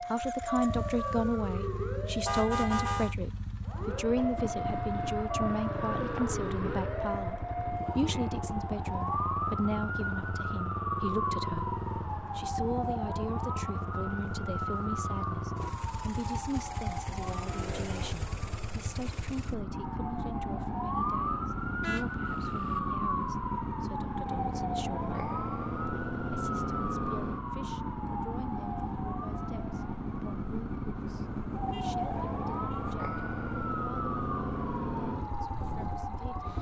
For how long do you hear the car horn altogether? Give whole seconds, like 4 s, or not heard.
4 s.